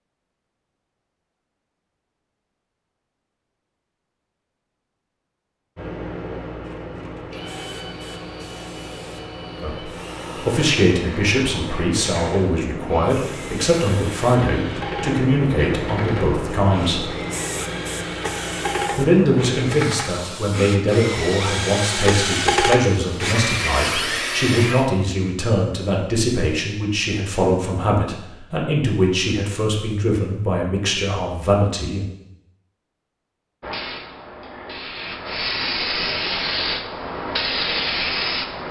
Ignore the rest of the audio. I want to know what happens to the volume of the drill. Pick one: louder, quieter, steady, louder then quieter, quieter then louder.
louder.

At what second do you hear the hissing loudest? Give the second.
38 s.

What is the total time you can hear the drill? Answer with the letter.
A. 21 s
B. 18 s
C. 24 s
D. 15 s
B.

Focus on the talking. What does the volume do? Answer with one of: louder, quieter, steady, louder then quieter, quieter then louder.
steady.